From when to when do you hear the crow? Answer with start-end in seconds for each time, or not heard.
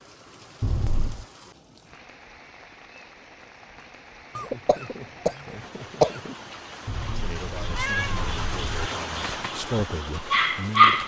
not heard.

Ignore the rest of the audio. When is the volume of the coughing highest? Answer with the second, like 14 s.
6 s.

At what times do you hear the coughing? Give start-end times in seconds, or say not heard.
4.3-6.3.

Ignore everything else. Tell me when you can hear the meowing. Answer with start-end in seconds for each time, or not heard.
0.6-1.2, 6.8-8.9.